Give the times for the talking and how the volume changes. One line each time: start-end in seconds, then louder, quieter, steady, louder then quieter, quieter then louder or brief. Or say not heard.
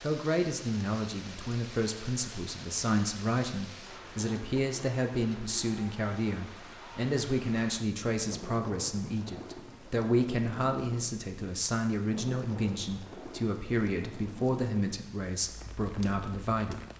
0.0-16.9 steady.